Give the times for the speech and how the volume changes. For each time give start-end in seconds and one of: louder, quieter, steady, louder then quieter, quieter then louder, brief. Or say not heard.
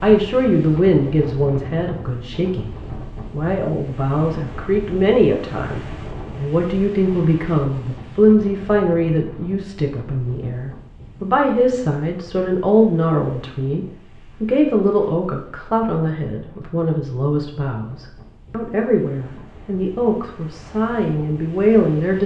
0.0-2.7 brief
3.3-22.2 steady.